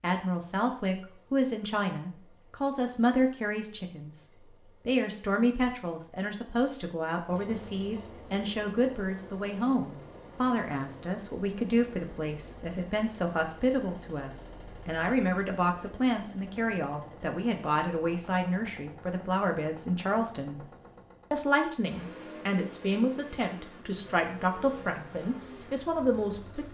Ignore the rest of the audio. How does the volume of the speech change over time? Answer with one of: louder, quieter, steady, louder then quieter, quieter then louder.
steady.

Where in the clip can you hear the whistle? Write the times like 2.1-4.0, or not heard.
not heard.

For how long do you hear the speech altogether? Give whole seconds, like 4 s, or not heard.
26 s.